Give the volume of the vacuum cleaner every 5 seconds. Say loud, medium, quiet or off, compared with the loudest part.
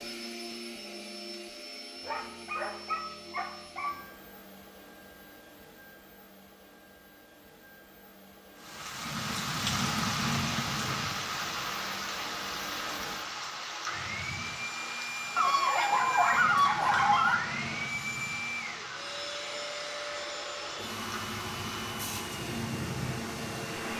medium, quiet, medium, loud, loud.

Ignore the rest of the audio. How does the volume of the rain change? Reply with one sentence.
The loudness of the rain goes down.